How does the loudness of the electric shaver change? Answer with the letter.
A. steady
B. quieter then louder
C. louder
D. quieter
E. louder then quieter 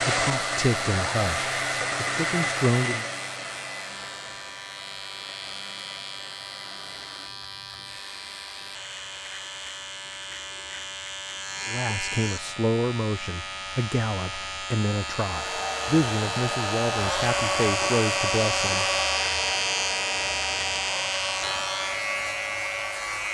C.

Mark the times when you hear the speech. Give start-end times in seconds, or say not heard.
0.0-3.0, 11.7-18.9.